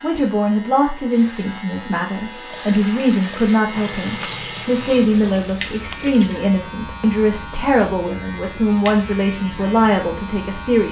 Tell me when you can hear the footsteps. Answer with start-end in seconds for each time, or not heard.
not heard.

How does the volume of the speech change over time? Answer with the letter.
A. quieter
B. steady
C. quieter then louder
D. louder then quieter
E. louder
B.